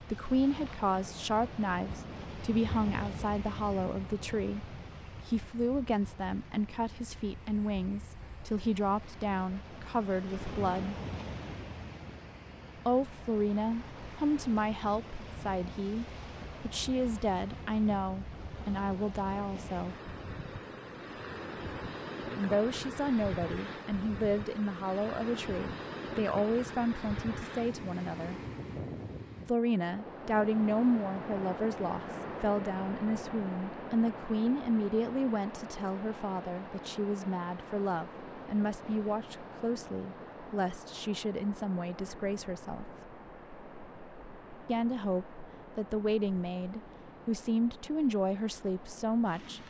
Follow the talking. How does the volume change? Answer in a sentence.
The volume of the talking stays about the same.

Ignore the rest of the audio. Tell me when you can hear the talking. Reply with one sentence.
The talking can be heard from 0.0 to 10.9 s, from 12.8 to 19.9 s, from 22.4 to 28.4 s, from 29.4 to 42.9 s and from 44.6 to 49.6 s.